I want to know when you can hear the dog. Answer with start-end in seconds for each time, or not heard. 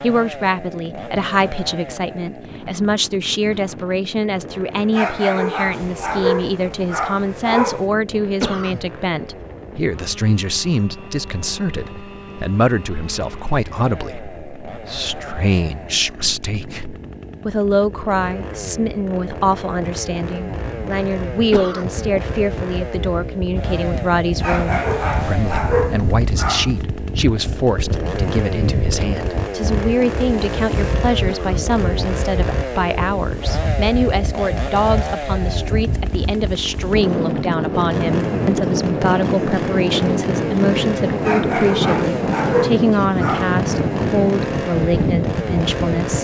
4.9-7.8, 24.4-26.8, 41.2-43.5.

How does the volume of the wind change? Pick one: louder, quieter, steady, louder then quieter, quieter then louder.
louder.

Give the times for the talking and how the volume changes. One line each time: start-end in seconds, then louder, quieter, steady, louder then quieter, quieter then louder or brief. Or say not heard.
0.0-46.1 steady.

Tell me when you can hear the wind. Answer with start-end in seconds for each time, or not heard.
0.1-46.1.